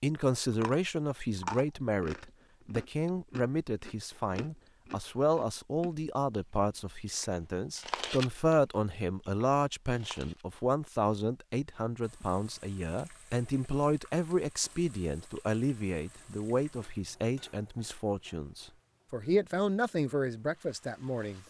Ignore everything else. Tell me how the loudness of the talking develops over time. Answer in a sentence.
The volume of the talking stays about the same.